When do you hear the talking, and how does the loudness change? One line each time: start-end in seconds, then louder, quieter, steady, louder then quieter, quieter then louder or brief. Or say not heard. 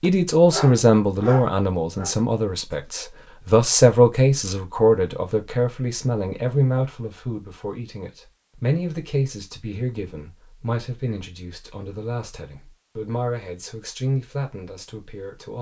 0.0-15.5 quieter.